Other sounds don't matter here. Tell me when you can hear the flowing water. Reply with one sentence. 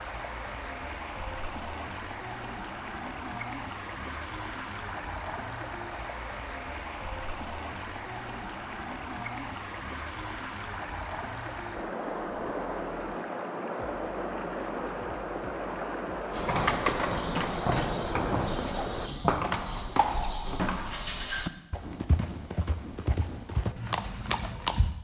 The flowing water can be heard from 0.0 to 19.1 s.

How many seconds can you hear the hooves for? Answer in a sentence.
You can hear the hooves for 9 seconds altogether.